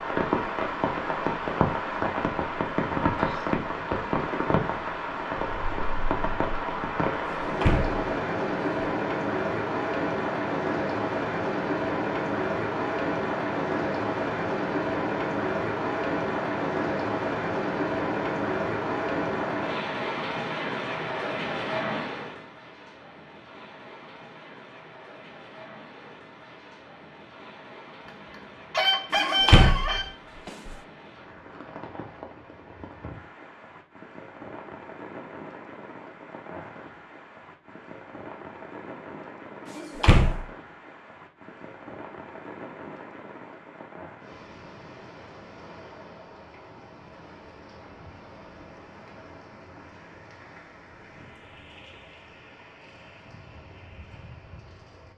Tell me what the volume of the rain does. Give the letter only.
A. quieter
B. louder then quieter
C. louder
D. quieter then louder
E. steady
A.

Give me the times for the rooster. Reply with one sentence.
The rooster can be heard from 28.7 to 30.1 s.